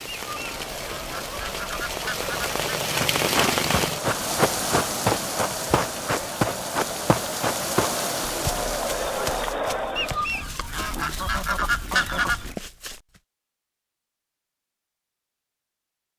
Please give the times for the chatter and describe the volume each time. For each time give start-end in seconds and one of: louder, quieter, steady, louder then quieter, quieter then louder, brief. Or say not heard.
0.2-10.2 louder.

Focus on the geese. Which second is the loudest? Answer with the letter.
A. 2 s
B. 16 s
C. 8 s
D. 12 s
D.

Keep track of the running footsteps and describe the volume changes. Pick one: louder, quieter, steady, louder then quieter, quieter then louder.
quieter.